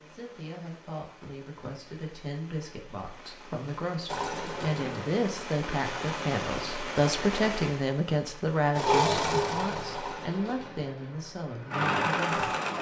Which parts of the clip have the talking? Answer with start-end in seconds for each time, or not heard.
0.1-12.6.